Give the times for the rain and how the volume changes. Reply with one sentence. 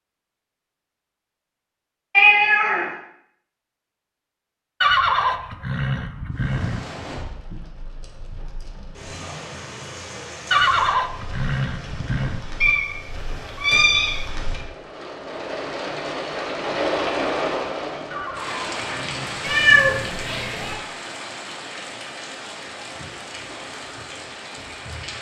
You can hear the rain from 6.3 to 25.1 s, getting louder then quieter.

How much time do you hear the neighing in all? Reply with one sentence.
You can hear the neighing for 6 seconds altogether.